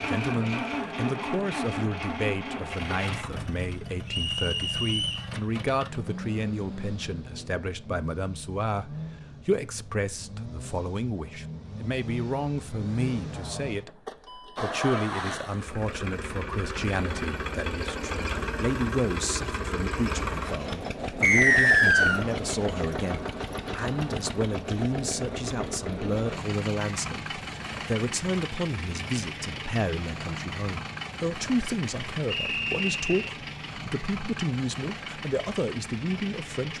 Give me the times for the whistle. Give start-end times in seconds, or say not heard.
4.0-5.2, 21.2-22.2, 32.3-33.3.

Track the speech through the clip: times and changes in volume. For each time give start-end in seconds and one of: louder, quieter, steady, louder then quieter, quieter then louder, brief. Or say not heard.
0.1-36.7 steady.